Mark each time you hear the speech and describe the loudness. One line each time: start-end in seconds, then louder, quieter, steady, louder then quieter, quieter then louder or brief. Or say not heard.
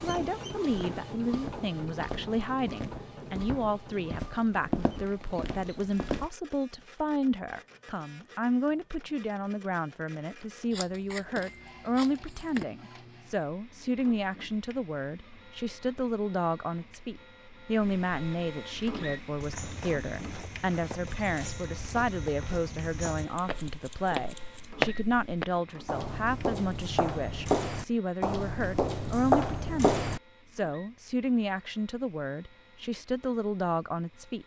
0.0-34.4 steady.